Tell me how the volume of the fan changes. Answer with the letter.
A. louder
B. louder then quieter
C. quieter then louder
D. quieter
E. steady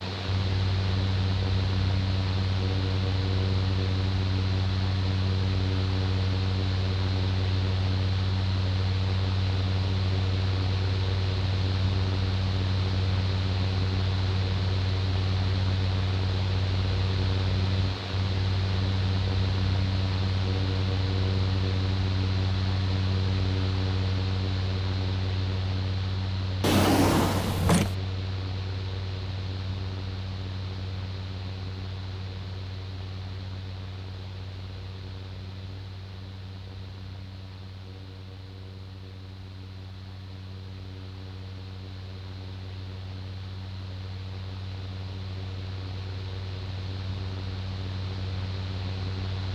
D.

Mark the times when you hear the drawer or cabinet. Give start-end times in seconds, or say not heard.
26.6-27.9.